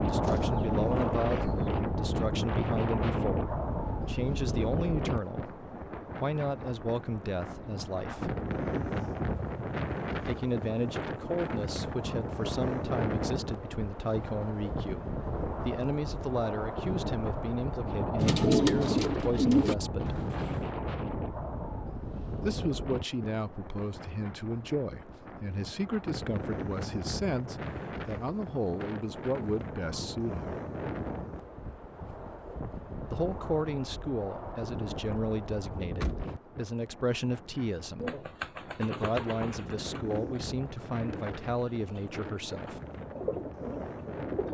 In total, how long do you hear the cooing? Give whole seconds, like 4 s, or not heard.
8 s.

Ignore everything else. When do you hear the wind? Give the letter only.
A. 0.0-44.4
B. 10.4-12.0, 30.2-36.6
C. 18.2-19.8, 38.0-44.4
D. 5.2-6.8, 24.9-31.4
A.